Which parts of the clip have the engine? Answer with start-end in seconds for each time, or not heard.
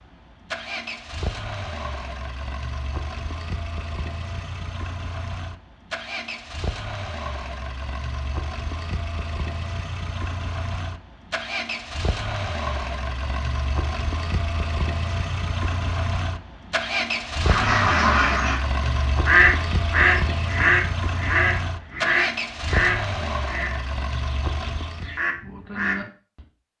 0.0-25.2.